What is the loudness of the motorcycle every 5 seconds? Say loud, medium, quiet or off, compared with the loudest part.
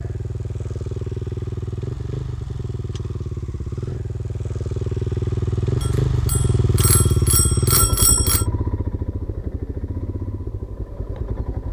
medium, loud, medium.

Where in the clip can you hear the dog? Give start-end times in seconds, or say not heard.
not heard.